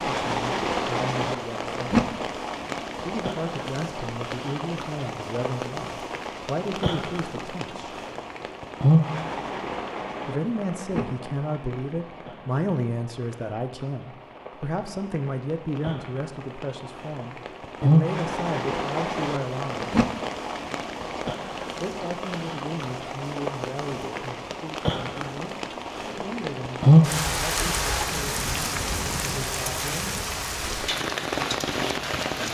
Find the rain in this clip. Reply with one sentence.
The rain can be heard from 0.0 to 32.4 s.